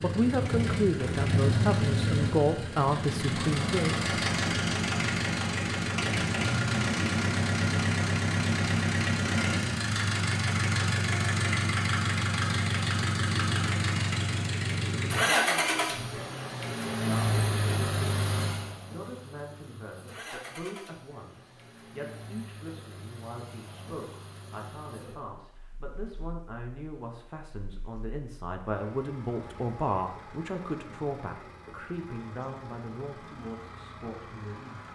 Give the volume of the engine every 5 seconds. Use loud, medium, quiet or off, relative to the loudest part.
loud, loud, loud, loud, quiet, quiet, quiet.